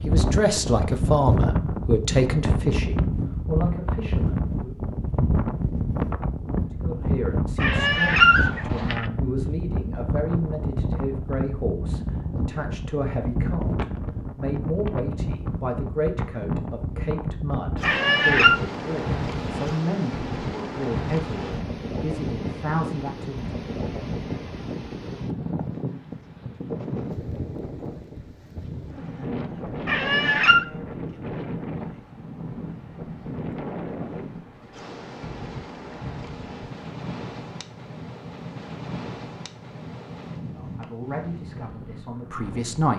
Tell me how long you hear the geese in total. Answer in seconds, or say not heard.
not heard.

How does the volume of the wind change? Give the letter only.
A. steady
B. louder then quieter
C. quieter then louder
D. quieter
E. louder
D.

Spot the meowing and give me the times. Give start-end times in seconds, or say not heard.
7.6-9.1, 17.8-18.6, 29.9-30.6.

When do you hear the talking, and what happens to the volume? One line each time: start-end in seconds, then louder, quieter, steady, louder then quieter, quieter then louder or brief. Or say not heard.
0.1-4.8 quieter
6.8-23.5 steady
40.5-42.9 brief.